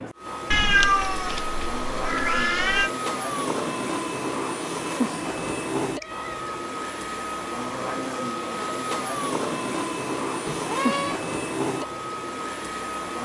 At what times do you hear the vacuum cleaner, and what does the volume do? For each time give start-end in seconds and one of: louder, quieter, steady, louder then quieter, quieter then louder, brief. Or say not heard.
0.0-13.1 steady.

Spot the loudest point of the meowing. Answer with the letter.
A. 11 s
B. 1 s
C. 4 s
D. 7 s
B.